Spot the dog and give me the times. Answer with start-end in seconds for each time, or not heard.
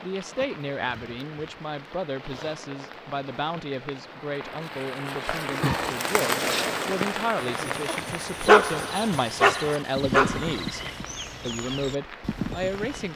8.4-10.9.